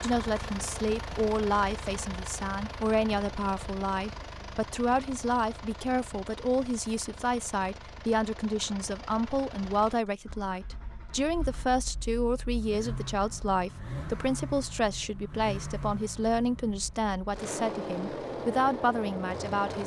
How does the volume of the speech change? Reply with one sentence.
The volume of the speech stays about the same.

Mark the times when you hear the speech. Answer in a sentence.
The speech can be heard from 0.0 to 19.8 s.